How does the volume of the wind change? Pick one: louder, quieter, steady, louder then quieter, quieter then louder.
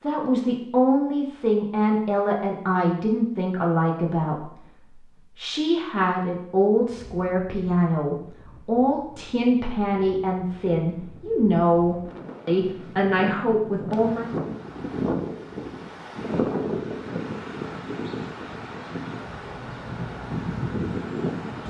louder.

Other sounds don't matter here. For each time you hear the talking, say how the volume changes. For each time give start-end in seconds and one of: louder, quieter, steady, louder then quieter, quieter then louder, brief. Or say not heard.
0.0-14.3 steady.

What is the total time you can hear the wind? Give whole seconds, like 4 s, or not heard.
15 s.